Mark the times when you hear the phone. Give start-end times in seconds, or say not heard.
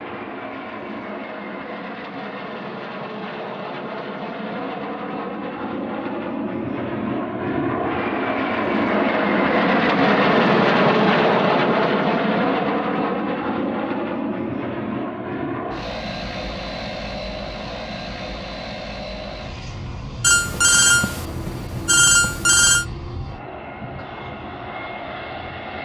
20.2-22.9.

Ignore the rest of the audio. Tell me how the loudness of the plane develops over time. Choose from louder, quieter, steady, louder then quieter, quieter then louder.
louder then quieter.